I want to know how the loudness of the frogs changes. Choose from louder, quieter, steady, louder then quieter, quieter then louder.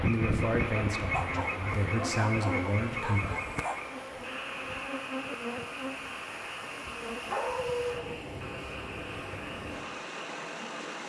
quieter.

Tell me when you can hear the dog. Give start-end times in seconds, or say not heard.
1.1-3.8, 7.1-8.2.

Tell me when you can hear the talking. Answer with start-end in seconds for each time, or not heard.
0.0-3.2.